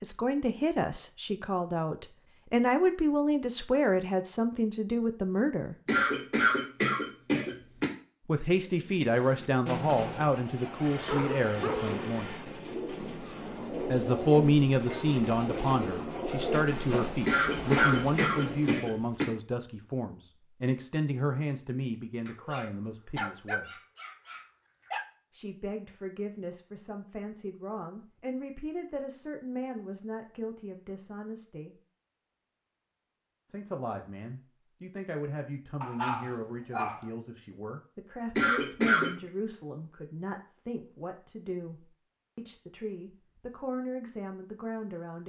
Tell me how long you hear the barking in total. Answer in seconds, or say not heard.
6 s.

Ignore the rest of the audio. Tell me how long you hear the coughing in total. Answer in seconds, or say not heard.
5 s.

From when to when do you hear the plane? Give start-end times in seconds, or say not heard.
not heard.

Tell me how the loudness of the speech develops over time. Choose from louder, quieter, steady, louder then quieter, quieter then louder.
quieter.